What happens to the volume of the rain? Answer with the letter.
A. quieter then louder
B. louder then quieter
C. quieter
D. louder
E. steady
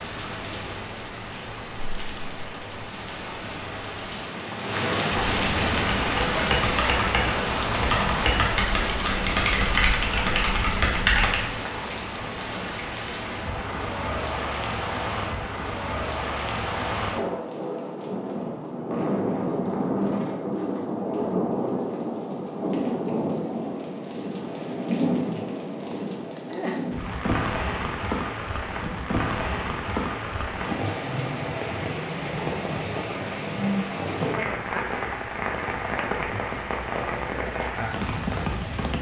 E.